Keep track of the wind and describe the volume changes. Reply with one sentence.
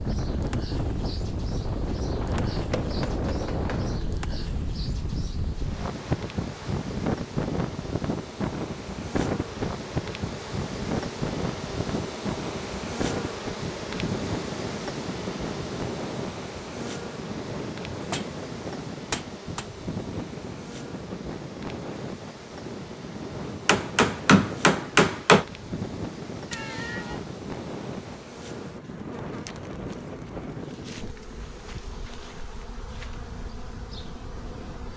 The loudness of the wind goes down.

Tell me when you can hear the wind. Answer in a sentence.
You can hear the wind from 0.0 to 34.9 s.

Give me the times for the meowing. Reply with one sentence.
The meowing can be heard from 26.5 to 27.2 s.